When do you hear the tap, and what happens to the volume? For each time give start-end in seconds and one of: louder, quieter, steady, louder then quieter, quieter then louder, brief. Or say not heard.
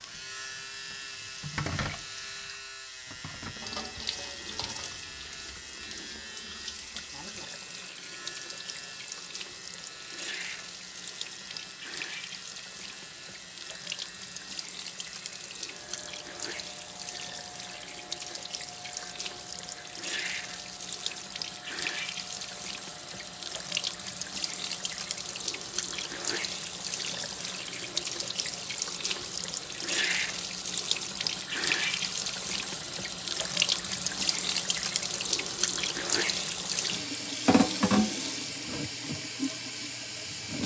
0.0-40.6 louder.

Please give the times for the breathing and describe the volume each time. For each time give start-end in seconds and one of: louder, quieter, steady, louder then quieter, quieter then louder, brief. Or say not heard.
not heard.